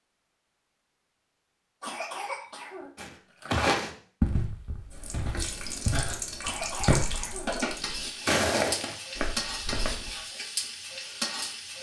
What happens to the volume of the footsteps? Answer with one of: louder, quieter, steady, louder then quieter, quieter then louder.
quieter then louder.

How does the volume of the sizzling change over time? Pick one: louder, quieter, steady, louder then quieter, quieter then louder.
steady.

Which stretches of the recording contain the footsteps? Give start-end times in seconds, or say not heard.
3.0-10.1.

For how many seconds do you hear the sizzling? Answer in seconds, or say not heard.
7 s.